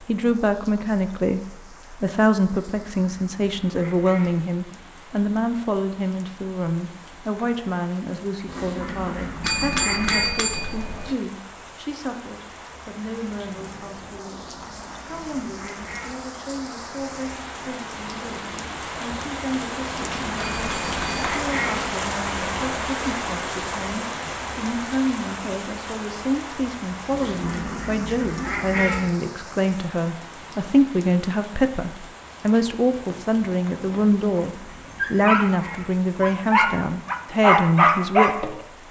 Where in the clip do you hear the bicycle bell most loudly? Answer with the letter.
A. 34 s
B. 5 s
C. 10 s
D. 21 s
C.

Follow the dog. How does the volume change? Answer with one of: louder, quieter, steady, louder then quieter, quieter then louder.
louder.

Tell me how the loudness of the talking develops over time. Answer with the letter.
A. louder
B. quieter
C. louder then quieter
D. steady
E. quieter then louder
E.